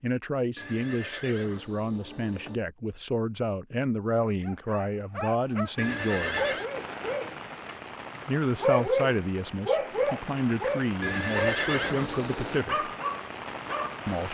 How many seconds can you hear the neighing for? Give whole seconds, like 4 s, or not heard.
5 s.